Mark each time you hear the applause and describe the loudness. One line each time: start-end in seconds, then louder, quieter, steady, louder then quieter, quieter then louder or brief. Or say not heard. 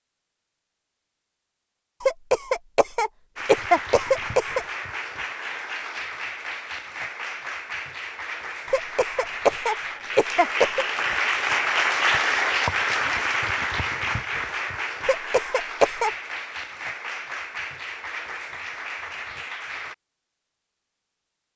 3.4-19.9 louder then quieter.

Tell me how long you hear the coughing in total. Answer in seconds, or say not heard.
6 s.